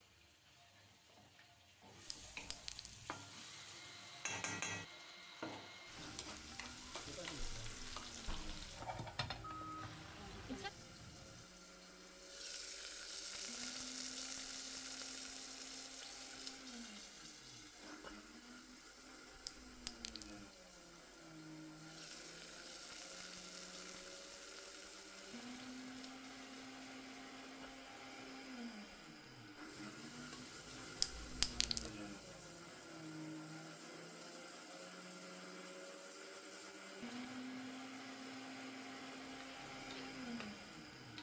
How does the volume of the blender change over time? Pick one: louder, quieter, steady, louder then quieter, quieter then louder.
louder.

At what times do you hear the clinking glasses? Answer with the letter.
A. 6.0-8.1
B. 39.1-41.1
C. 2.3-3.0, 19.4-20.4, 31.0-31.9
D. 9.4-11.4
C.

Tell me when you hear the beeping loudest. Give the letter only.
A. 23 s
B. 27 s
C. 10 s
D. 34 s
C.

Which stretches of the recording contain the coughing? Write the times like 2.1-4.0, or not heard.
not heard.